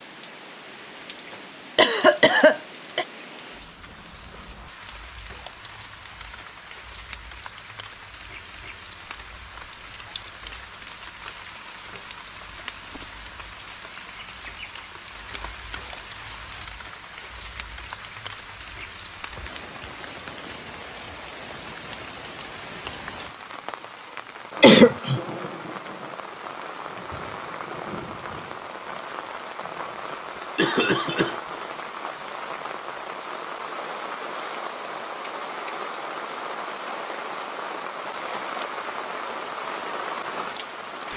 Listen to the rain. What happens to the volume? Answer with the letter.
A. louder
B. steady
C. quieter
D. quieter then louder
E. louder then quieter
A.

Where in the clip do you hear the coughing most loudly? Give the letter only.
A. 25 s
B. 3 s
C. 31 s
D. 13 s
A.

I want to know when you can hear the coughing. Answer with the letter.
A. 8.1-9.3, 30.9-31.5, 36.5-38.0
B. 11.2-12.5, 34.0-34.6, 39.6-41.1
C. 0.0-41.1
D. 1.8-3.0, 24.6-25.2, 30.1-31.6
D.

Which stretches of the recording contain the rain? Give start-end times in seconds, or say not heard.
0.0-41.1.